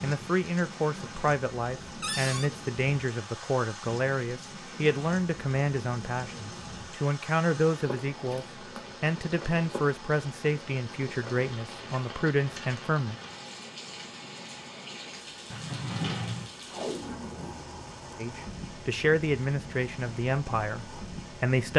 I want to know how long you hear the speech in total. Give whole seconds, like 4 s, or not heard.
17 s.